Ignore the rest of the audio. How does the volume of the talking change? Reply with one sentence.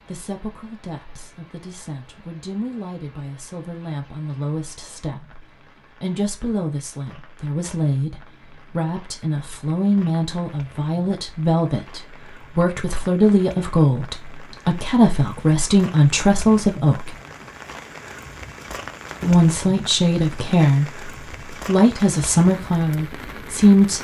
The volume of the talking goes up.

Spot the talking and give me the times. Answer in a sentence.
The talking can be heard from 0.1 to 17.1 s and from 19.2 to 23.9 s.